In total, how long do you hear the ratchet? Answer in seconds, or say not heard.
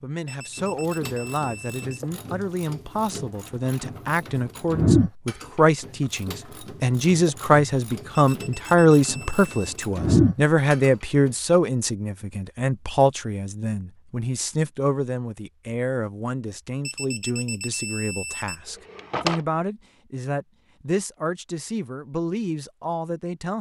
11 s.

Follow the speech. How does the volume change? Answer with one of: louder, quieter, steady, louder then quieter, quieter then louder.
louder then quieter.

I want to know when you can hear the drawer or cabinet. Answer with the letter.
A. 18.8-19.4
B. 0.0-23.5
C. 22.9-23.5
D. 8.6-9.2
A.